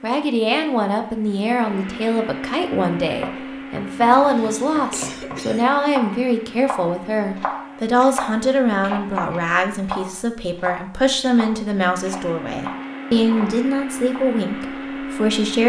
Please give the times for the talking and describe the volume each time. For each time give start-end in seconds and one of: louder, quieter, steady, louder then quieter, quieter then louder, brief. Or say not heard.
0.0-15.6 steady.